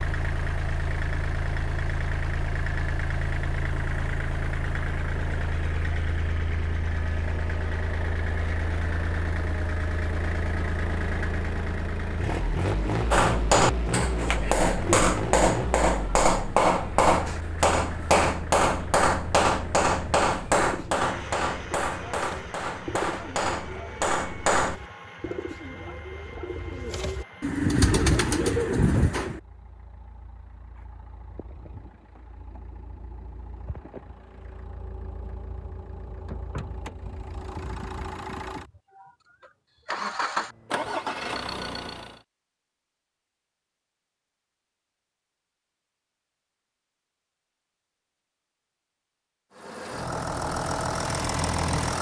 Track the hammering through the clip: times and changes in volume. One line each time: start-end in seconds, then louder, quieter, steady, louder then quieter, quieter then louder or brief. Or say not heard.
13.1-24.8 quieter.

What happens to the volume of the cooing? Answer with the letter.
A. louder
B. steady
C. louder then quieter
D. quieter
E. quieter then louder
A.